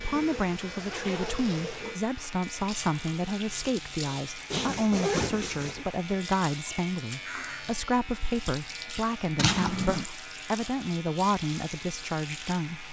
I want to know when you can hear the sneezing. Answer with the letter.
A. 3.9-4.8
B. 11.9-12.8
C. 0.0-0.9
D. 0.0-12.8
A.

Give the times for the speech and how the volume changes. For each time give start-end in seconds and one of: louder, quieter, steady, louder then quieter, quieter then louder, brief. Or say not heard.
0.0-12.8 steady.